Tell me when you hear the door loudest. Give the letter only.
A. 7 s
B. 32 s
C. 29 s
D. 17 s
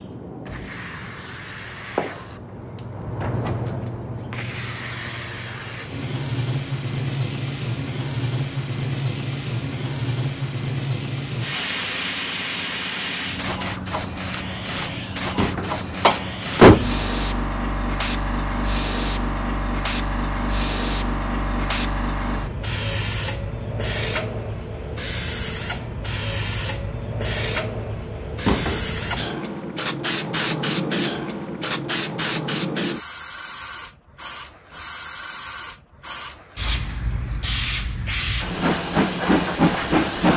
D.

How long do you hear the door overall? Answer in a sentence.
You can hear the door for 2 seconds altogether.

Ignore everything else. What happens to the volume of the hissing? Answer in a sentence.
The loudness of the hissing stays about the same.